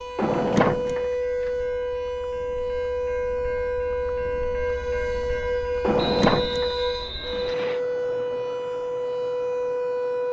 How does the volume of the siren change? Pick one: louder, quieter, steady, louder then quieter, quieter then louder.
steady.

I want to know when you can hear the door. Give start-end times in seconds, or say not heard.
0.1-1.5, 5.8-6.8.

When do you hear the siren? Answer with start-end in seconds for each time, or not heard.
0.0-10.2.